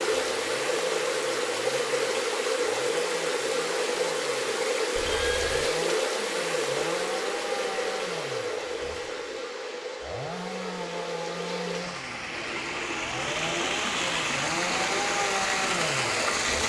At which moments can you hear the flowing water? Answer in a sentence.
You can hear the flowing water from 0.0 to 16.6 s.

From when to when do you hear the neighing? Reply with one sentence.
The neighing can be heard from 5.0 to 5.7 s.